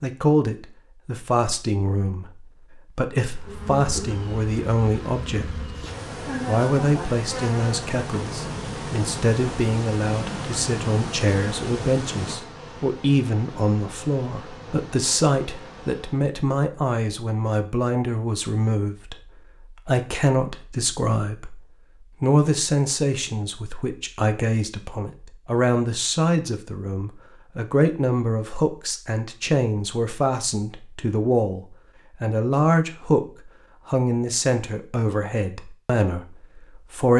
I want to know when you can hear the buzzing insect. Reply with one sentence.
You can hear the buzzing insect from 3.3 to 16.4 s.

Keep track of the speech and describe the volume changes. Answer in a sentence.
The loudness of the speech stays about the same.